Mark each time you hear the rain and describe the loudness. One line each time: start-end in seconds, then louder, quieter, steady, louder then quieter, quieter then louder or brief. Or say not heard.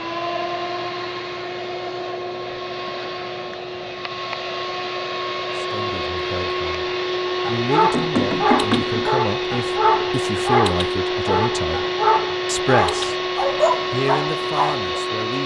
not heard.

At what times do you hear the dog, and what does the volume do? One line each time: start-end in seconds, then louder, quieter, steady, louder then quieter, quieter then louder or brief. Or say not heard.
7.4-15.0 steady.